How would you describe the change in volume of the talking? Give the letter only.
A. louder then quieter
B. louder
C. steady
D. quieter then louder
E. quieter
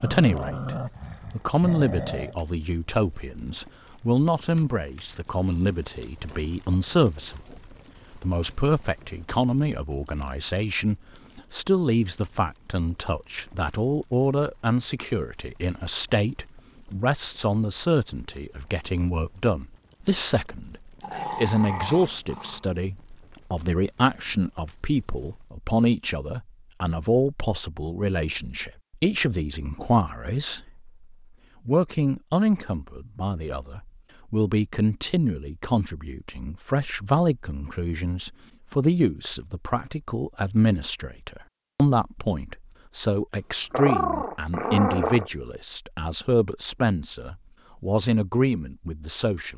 C.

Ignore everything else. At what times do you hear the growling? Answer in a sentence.
You can hear the growling from 0.0 to 2.4 s, from 21.0 to 22.6 s and from 43.7 to 45.3 s.